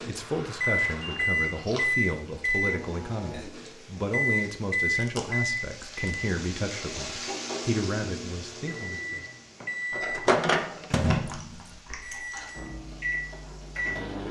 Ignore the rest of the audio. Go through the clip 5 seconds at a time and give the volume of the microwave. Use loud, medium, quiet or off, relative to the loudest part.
loud, medium, loud.